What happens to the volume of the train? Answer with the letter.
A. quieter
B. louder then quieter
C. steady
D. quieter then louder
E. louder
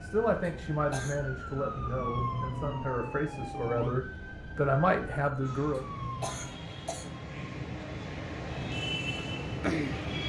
E.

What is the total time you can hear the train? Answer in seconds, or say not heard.
10 s.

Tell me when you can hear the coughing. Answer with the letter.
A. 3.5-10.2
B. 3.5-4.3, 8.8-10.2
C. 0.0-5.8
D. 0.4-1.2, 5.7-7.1
D.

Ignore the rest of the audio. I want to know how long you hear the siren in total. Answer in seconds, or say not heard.
7 s.